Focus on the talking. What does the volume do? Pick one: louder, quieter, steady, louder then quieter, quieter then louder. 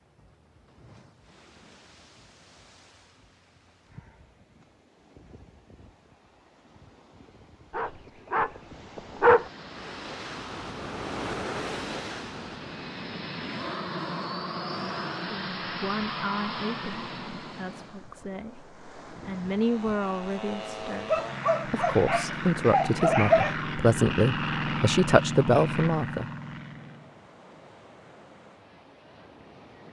louder.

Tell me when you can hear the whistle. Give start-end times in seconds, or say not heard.
not heard.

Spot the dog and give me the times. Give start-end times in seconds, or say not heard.
7.7-9.5, 21.1-23.6.